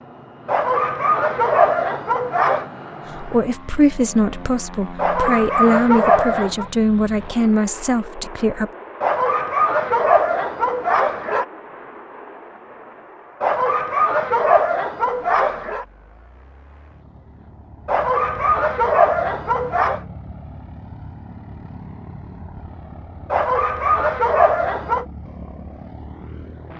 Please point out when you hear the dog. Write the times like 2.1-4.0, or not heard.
0.5-2.6, 5.0-6.7, 9.0-11.4, 13.4-15.8, 17.9-20.0, 23.3-25.1.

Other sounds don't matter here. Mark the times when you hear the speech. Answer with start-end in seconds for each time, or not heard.
3.1-8.7.